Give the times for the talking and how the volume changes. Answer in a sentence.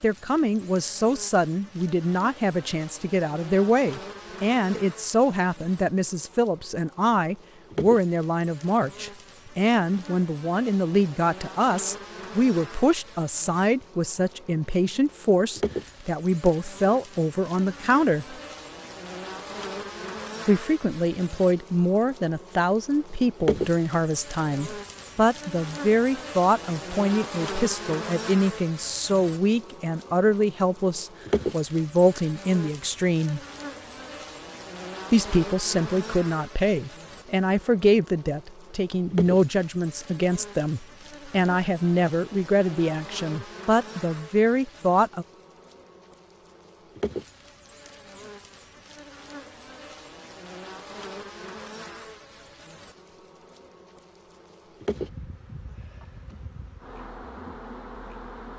You can hear the talking from 0.0 to 18.4 s, at a steady volume; from 20.4 to 33.4 s, at a steady volume; and from 35.1 to 45.2 s, at a steady volume.